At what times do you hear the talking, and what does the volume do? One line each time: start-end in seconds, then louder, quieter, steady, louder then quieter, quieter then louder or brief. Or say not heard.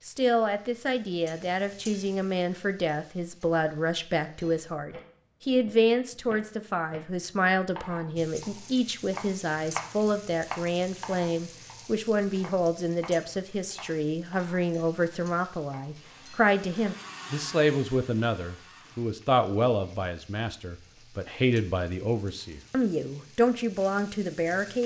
0.1-24.8 steady.